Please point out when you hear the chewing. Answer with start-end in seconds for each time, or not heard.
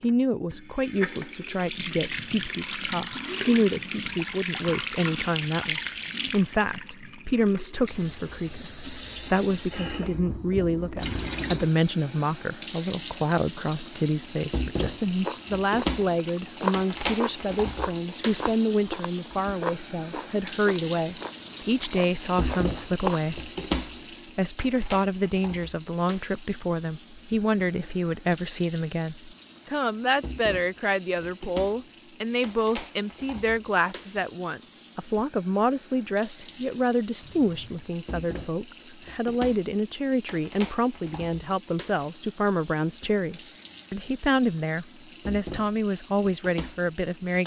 15.1-23.2.